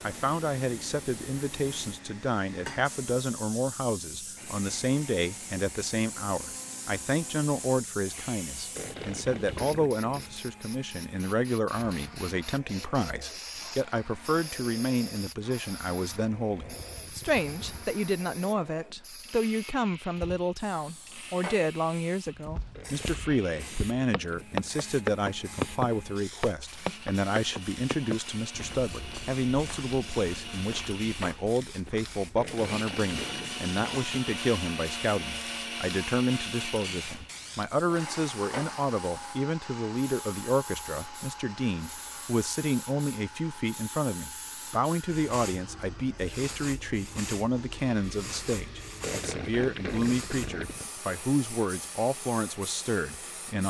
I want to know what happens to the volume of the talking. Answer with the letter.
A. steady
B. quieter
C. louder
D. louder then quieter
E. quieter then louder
A.